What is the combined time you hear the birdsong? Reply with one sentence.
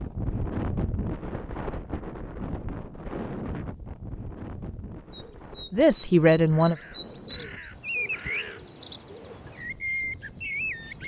You can hear the birdsong for 6 seconds altogether.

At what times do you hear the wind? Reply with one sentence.
The wind can be heard from 0.0 to 11.0 s.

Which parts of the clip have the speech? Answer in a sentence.
You can hear the speech from 5.7 to 6.8 s.